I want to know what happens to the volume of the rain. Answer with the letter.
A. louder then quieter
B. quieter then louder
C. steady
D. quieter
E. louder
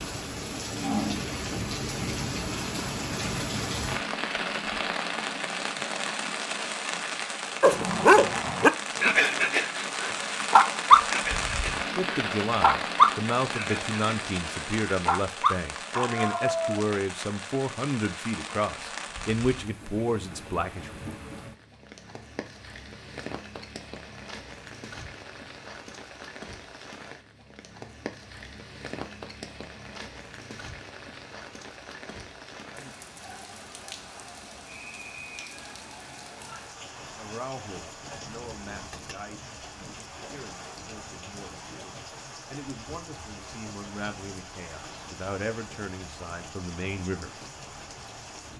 D.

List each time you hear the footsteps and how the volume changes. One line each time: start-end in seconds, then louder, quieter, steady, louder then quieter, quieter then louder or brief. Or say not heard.
not heard.